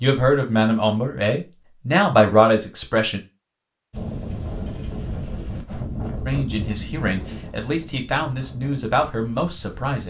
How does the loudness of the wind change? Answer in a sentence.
The volume of the wind goes down.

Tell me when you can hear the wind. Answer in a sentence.
You can hear the wind from 3.9 to 9.8 s.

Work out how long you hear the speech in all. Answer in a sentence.
The speech can be heard for 7 seconds in total.